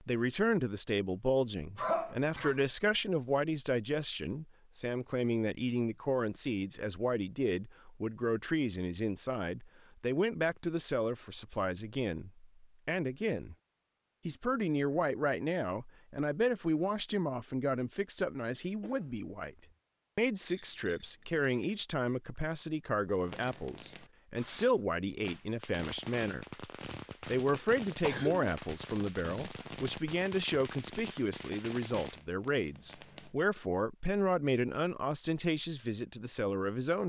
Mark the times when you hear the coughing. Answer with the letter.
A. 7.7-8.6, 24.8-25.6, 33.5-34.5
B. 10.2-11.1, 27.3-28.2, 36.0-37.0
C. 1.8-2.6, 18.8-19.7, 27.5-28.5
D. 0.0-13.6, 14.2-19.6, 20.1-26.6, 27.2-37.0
C.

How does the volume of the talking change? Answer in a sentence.
The volume of the talking stays about the same.